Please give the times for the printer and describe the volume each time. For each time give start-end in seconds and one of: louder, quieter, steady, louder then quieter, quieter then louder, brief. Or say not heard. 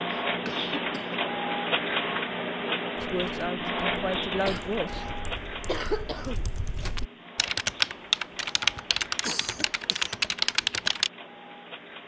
0.0-12.0 quieter.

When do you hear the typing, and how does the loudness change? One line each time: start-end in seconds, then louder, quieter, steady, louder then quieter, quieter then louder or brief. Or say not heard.
3.0-11.1 louder.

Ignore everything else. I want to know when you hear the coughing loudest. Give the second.
6 s.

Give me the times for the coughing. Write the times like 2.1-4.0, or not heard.
0.1-1.2, 4.5-6.5, 8.6-10.2.